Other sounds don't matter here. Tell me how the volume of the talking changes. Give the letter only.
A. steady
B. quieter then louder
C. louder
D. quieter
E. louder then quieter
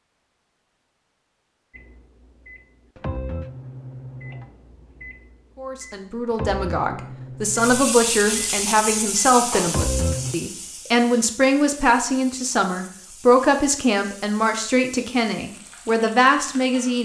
A.